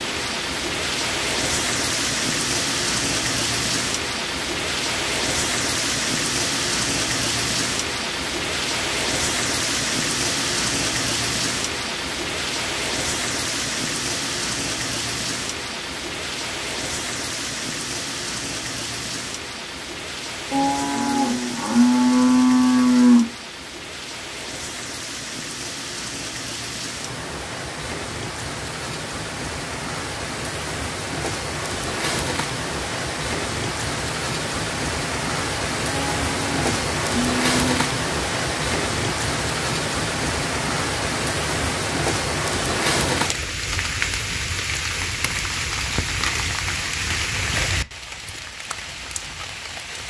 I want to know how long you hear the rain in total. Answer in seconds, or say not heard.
50 s.